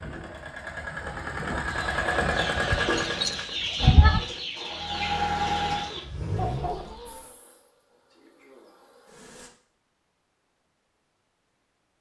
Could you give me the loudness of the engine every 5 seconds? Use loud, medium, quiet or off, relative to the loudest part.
loud, loud, off.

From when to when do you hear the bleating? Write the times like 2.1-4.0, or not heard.
2.7-4.2.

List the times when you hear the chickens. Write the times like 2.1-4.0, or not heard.
1.6-7.3.